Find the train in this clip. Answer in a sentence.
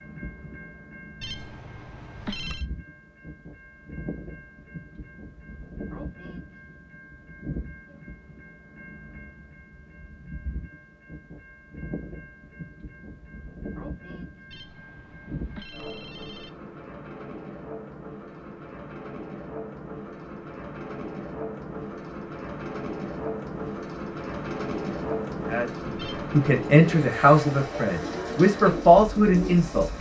The train can be heard from 0.0 to 29.9 s.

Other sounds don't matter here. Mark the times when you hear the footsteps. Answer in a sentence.
The footsteps can't be heard in this clip.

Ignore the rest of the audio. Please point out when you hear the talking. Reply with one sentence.
The talking can be heard from 25.4 to 29.9 s.